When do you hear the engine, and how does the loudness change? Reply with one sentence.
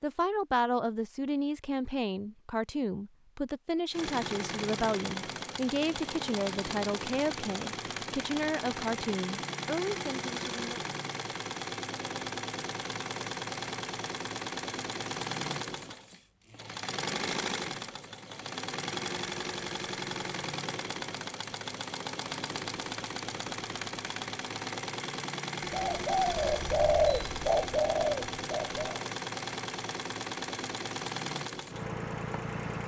You can hear the engine from 3.9 to 32.8 s, at a steady volume.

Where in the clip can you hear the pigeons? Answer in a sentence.
You can hear the pigeons from 25.6 to 29.0 s.